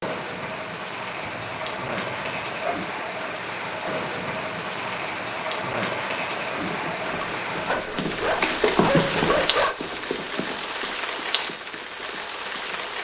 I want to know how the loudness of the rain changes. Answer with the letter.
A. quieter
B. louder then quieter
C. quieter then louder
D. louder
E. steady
E.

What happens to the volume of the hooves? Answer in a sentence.
The loudness of the hooves goes up, then down.